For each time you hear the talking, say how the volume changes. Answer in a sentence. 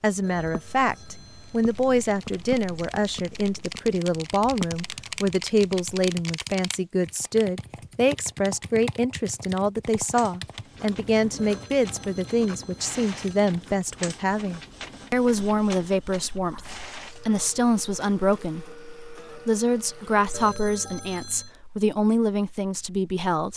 The talking can be heard from 0.0 to 23.5 s, at a steady volume.